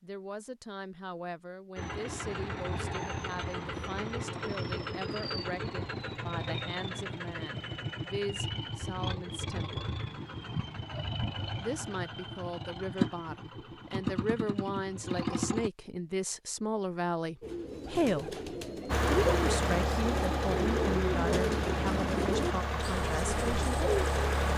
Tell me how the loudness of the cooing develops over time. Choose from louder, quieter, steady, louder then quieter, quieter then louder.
louder then quieter.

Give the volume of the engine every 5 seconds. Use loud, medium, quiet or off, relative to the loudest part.
medium, medium, medium, loud, loud.